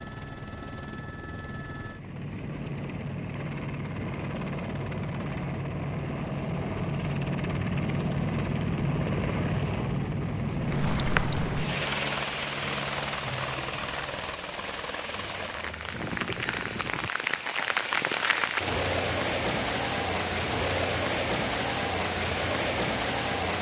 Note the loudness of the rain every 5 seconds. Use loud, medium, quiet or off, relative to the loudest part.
off, off, medium, loud, loud.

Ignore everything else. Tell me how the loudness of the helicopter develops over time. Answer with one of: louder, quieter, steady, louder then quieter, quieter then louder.
louder then quieter.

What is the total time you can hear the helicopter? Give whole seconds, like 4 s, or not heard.
17 s.